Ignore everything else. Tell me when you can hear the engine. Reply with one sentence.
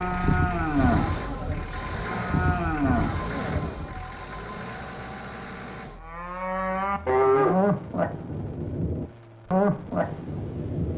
The engine can be heard from 0.0 to 10.9 s.